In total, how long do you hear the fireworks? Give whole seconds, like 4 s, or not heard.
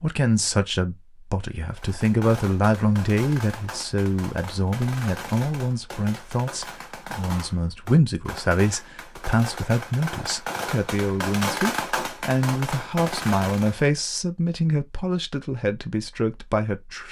12 s.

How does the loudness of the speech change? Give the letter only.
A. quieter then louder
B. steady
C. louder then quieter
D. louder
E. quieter
B.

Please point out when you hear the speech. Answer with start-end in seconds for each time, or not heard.
0.0-17.0.